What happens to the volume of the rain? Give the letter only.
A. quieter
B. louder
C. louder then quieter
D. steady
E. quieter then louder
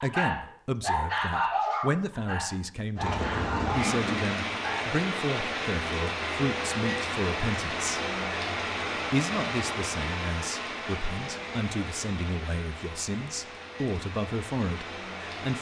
A.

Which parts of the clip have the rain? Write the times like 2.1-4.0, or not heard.
3.0-15.5.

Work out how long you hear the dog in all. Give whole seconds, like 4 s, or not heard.
5 s.